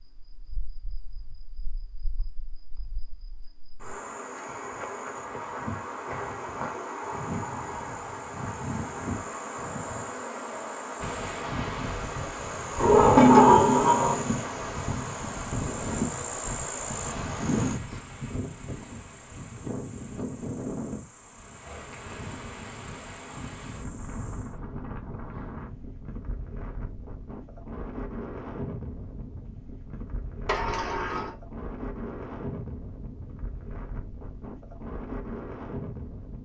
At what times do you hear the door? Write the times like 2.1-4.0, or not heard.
12.8-14.2, 30.4-31.4.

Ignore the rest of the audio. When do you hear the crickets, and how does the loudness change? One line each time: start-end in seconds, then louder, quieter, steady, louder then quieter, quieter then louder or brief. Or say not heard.
0.0-24.6 louder then quieter.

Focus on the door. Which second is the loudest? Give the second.
13 s.